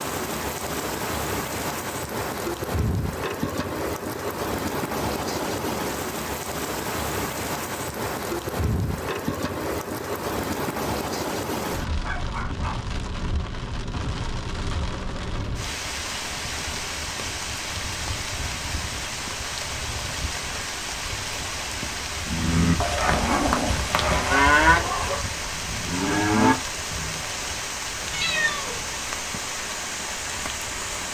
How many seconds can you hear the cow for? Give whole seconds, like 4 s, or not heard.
5 s.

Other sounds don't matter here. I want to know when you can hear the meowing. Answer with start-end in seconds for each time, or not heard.
28.1-29.1.